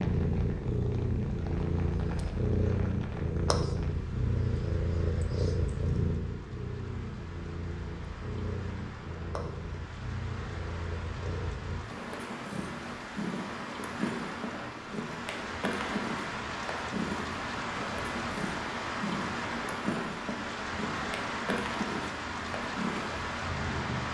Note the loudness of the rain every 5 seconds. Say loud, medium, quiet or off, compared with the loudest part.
medium, quiet, medium, loud, loud.